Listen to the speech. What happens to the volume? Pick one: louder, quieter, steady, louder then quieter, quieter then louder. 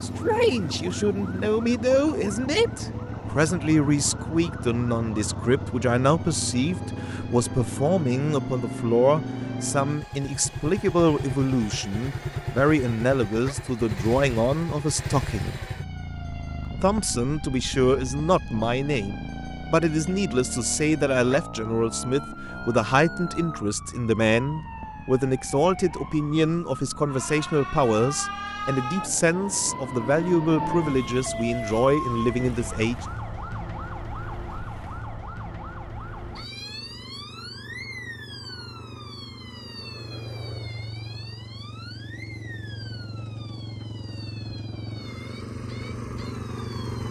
steady.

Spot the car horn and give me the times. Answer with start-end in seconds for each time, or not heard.
not heard.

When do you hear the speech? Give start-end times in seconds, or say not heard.
0.0-15.6, 16.8-33.0.